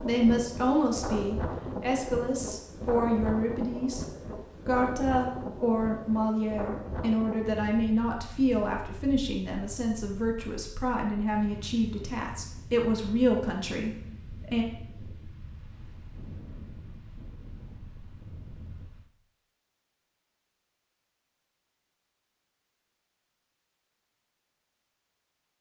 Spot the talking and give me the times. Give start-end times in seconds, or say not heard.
0.0-14.7.